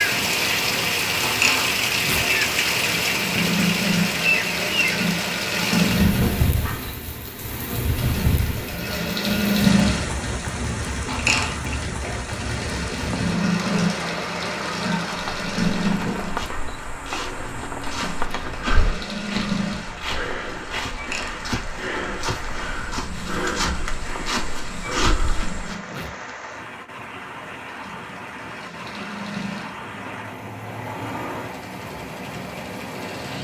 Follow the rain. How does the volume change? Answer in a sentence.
The loudness of the rain goes down.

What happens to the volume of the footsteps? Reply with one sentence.
The volume of the footsteps goes up.